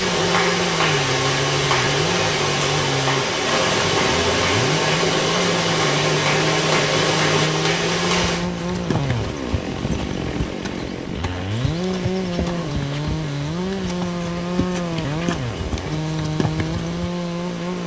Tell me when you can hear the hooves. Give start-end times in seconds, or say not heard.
8.3-17.1.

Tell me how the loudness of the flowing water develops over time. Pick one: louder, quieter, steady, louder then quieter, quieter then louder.
quieter.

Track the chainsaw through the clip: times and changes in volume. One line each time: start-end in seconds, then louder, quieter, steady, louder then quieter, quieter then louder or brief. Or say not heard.
0.0-17.8 steady.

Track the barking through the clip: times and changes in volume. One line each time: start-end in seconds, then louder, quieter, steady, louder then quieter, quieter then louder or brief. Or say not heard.
not heard.